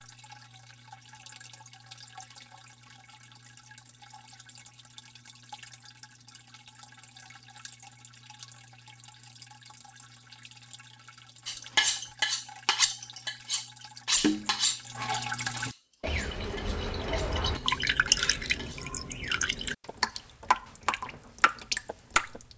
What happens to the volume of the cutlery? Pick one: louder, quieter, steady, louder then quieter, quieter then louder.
quieter.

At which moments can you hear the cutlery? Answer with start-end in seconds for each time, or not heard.
11.4-18.9.